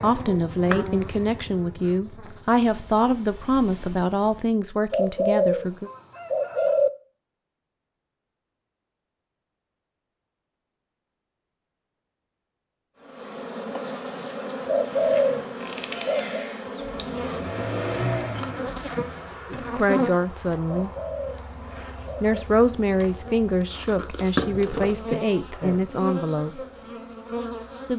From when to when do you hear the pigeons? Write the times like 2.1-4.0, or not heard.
4.9-6.9, 14.7-16.4, 20.6-22.4.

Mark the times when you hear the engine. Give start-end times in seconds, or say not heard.
2.6-4.5, 14.8-19.4.